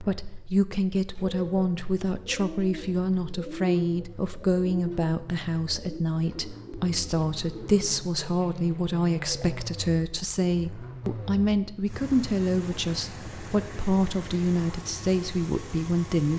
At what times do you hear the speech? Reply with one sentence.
You can hear the speech from 0.0 to 16.3 s.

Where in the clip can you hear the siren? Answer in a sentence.
You can't hear the siren here.